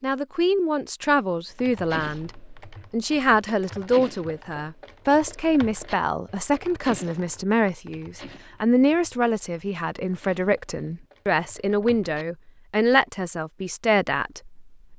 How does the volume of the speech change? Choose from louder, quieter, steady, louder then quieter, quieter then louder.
steady.